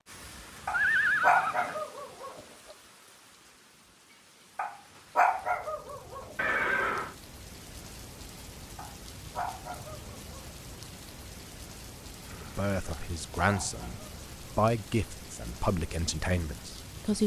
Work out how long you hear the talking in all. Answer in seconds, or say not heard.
5 s.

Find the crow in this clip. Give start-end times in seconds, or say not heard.
not heard.